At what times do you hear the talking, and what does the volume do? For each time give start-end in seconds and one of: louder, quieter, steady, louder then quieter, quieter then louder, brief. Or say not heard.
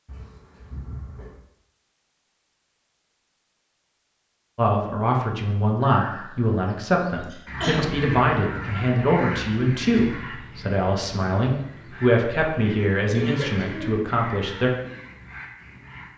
4.5-14.7 steady.